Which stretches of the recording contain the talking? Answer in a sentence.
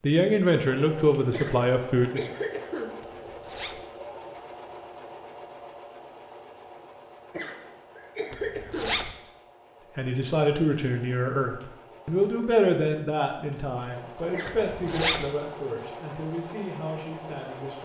The talking can be heard from 0.0 to 2.3 s and from 9.9 to 17.8 s.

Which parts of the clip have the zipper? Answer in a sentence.
The zipper can be heard from 3.0 to 3.9 s, from 8.3 to 9.2 s and from 14.4 to 15.3 s.